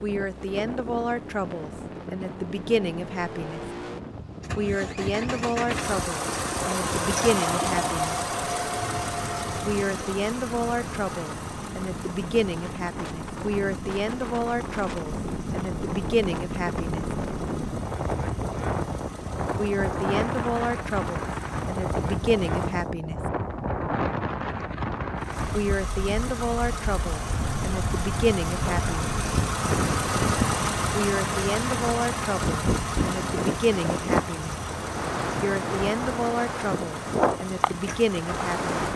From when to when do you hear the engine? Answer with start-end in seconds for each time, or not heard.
0.1-22.9, 25.1-38.9.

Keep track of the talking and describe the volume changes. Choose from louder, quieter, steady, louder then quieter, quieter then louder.
steady.